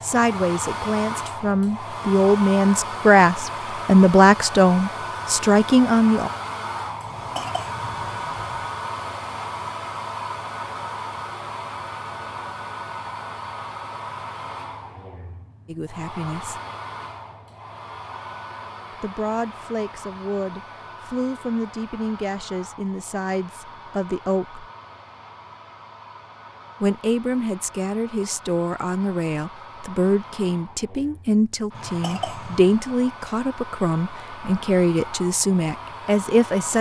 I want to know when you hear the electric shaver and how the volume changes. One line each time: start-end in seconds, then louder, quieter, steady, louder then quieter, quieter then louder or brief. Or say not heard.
not heard.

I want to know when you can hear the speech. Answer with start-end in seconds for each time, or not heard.
0.0-6.3, 15.7-16.6, 19.0-24.6, 26.8-36.7.